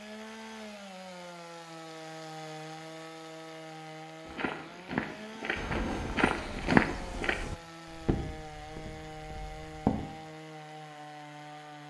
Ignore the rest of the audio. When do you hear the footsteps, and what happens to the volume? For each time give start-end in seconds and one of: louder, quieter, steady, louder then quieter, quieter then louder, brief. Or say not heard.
4.2-10.1 louder then quieter.